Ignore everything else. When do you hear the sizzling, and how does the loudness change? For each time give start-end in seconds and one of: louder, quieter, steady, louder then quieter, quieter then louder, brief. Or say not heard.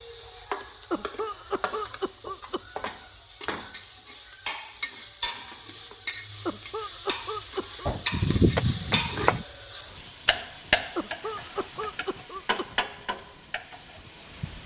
0.0-14.6 louder then quieter.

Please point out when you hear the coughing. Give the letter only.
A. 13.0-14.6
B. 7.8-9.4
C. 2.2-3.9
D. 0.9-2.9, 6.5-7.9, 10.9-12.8
D.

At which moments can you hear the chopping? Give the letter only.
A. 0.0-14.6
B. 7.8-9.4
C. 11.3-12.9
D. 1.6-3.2
B.